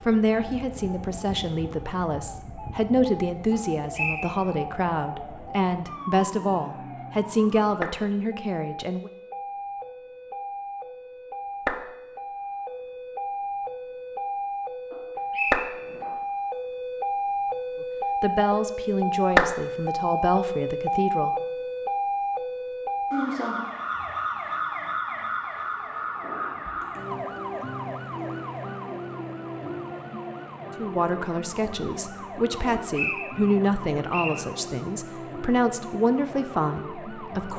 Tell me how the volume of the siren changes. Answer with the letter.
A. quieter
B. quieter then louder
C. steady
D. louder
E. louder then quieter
E.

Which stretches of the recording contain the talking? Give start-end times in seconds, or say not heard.
0.1-9.1, 18.2-21.4, 30.8-37.5.